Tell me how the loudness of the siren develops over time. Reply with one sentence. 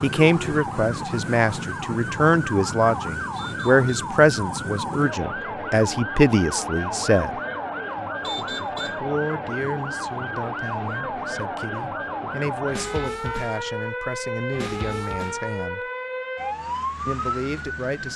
The loudness of the siren stays about the same.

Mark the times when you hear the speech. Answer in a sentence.
You can hear the speech from 0.0 to 7.3 s, from 8.9 to 15.8 s and from 17.1 to 18.1 s.